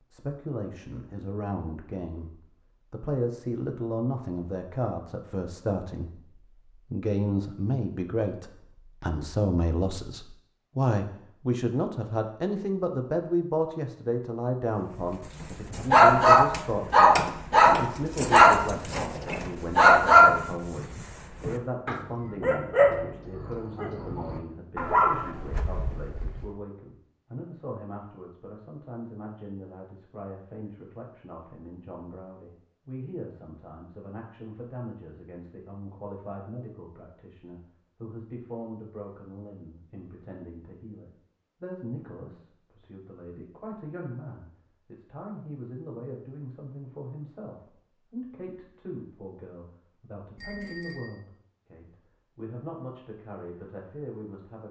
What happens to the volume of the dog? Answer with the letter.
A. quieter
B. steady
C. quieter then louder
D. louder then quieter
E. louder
A.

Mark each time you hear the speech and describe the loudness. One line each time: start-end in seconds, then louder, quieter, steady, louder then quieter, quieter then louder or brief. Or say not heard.
0.0-54.6 quieter.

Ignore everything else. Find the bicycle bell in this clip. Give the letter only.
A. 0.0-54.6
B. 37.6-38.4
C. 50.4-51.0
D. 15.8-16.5
C.